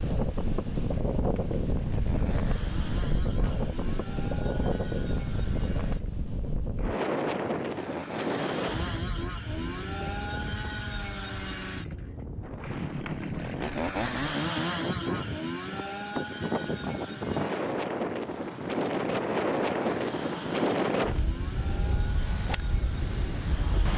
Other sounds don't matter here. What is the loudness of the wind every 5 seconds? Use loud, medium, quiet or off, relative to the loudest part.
loud, loud, medium, loud, loud.